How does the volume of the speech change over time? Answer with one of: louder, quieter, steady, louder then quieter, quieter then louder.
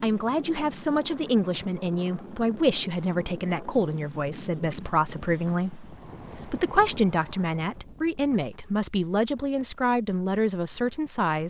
steady.